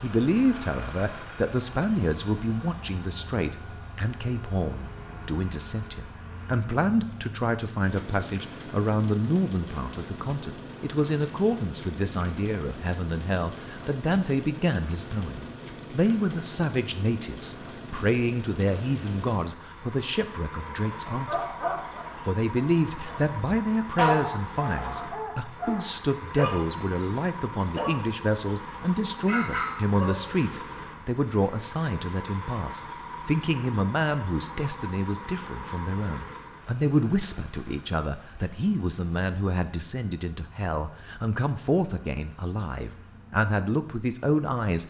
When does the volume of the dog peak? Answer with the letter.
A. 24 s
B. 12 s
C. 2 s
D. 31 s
A.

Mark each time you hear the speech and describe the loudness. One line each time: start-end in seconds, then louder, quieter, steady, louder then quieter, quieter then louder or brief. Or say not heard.
0.0-21.4 steady
22.1-44.8 steady.